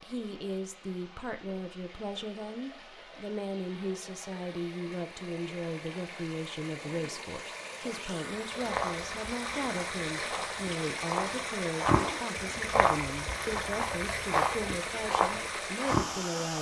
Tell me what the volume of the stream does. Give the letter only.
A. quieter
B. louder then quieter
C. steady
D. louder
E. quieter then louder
D.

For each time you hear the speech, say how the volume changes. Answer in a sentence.
You can hear the speech from 0.0 to 16.5 s, at a steady volume.